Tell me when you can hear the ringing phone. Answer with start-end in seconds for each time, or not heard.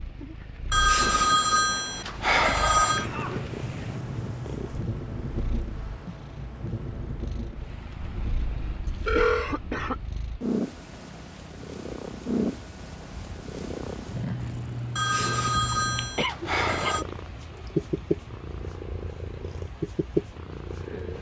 0.7-3.1, 8.8-9.5, 14.9-17.1.